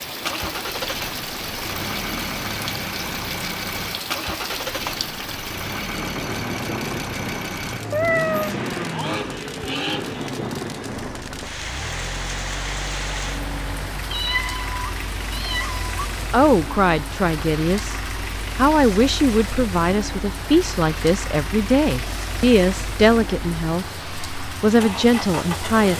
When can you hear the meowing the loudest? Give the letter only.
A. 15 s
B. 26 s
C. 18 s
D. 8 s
D.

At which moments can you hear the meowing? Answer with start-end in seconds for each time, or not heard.
7.9-8.6, 14.1-16.1.